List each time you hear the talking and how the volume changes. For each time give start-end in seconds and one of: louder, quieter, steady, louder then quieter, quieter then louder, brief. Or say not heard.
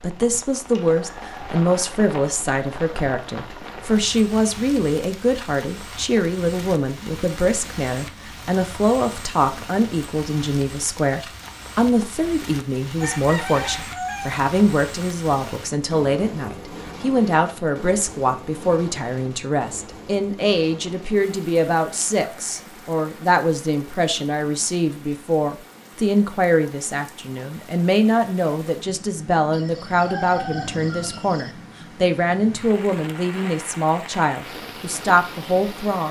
0.0-36.0 steady.